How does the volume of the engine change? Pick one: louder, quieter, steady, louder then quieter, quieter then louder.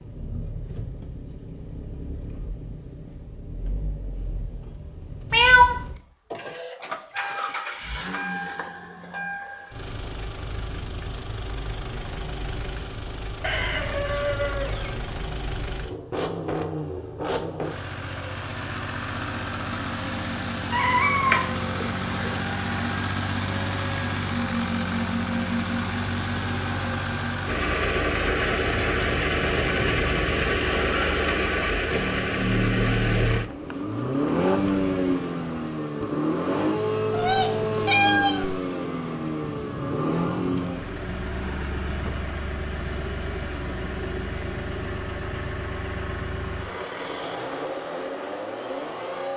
louder then quieter.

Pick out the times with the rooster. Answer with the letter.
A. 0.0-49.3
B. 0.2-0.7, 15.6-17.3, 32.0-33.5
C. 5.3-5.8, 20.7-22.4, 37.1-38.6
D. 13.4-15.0
D.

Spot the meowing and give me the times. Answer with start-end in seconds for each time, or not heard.
5.3-5.8, 20.7-22.4, 37.1-38.6.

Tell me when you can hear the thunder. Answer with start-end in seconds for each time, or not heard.
not heard.